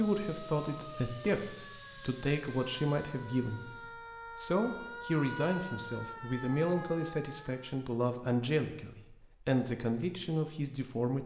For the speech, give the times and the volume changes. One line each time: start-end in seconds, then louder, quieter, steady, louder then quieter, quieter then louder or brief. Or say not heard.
0.0-11.2 steady.